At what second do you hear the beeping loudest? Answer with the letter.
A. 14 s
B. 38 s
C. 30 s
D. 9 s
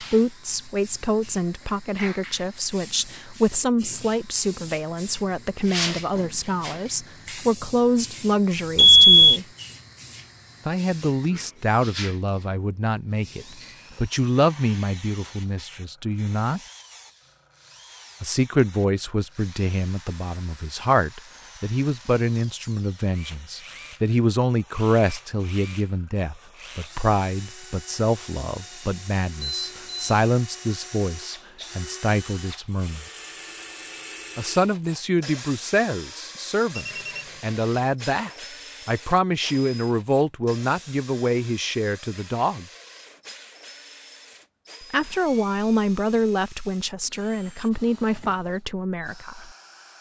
D.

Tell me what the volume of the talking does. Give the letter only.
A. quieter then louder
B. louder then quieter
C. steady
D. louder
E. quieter
C.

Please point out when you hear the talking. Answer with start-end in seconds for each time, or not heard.
0.0-9.4, 10.7-16.6, 18.2-33.0, 34.4-42.6, 44.9-49.5.